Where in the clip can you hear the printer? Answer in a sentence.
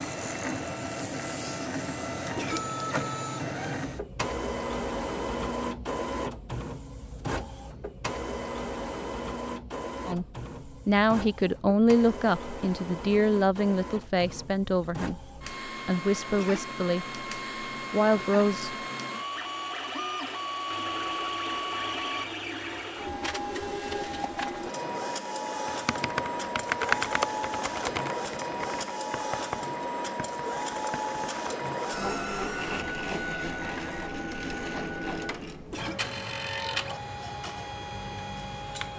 You can hear the printer from 0.0 to 38.9 s.